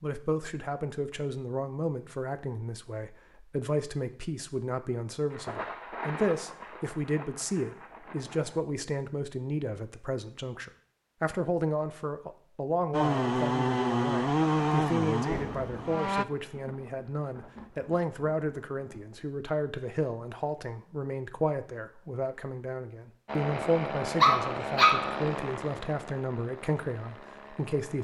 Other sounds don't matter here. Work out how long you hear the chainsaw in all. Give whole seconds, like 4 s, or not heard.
8 s.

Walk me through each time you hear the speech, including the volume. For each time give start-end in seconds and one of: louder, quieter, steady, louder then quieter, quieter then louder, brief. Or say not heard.
0.0-27.9 steady.